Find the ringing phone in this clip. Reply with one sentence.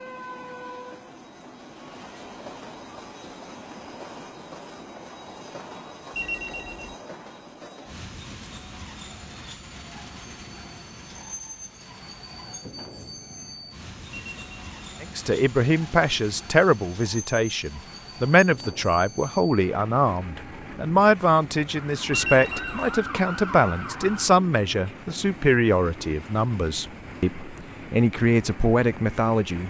You can hear the ringing phone from 6.1 to 7.0 s, from 14.1 to 14.7 s and from 22.1 to 22.9 s.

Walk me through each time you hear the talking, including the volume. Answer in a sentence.
You can hear the talking from 15.0 to 29.6 s, at a steady volume.